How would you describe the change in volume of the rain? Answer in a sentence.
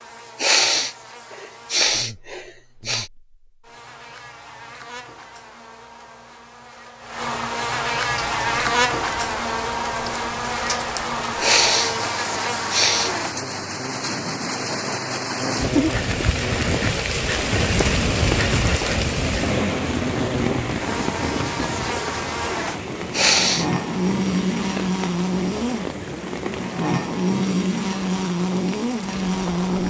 The volume of the rain goes up, then down.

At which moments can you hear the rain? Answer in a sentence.
You can hear the rain from 8.1 to 29.8 s.